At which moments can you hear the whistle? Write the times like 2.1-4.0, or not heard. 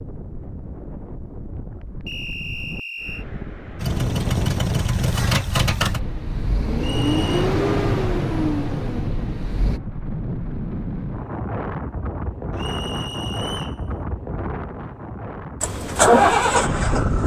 2.0-3.2, 6.8-7.5, 12.6-13.8.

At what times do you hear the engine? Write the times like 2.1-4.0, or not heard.
3.8-9.8, 15.6-17.2.